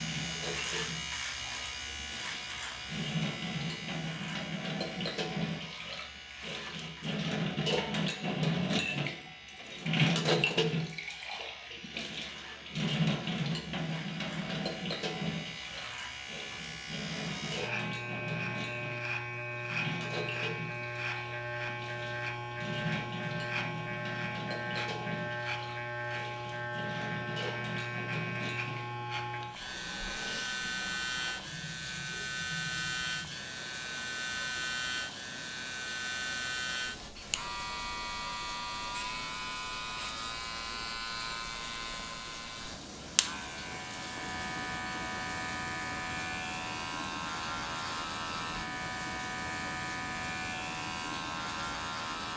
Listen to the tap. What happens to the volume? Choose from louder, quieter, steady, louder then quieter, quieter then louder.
quieter.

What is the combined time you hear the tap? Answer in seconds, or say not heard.
52 s.